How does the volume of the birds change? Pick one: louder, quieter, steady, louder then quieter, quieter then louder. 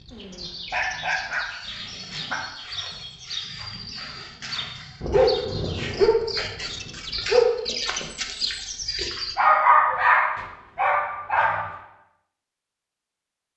louder.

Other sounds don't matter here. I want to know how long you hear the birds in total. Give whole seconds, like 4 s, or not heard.
9 s.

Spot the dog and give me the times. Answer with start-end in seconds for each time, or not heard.
0.1-2.4, 5.0-7.5, 9.3-11.6.